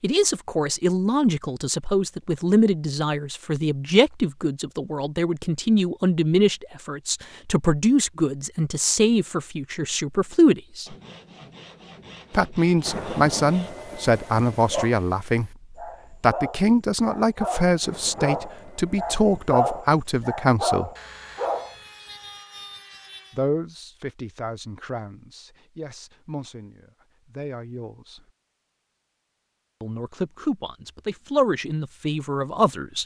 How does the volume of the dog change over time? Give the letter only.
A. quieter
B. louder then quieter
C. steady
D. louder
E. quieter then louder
D.